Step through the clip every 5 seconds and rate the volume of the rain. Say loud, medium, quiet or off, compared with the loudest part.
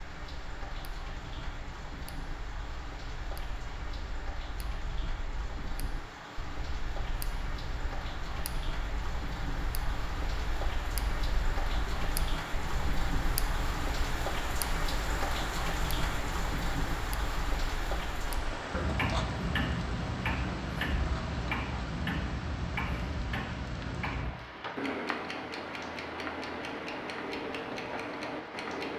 medium, medium, loud, loud, medium, medium.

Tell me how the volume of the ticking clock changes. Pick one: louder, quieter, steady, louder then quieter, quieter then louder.
louder.